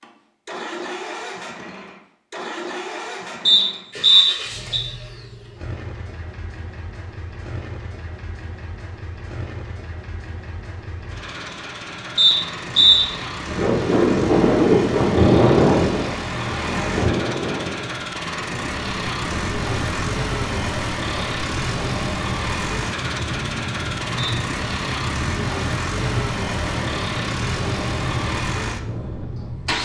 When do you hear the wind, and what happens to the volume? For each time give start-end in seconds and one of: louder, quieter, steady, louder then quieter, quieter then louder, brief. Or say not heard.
13.4-29.7 quieter.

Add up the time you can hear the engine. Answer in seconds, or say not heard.
30 s.